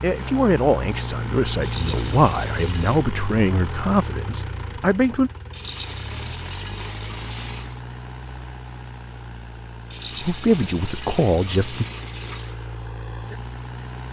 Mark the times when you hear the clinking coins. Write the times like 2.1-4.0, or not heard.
1.6-3.0, 5.5-7.8, 9.9-12.6.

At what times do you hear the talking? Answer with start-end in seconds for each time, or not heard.
0.0-5.3, 10.2-11.8.